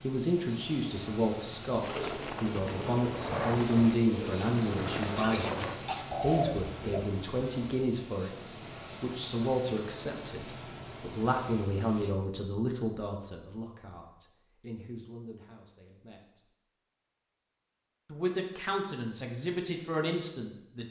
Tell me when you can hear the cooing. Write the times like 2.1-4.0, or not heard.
1.8-7.0.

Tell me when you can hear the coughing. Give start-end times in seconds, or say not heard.
5.2-6.0.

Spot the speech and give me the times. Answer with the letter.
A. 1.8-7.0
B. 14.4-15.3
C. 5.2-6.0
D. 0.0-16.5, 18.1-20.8
D.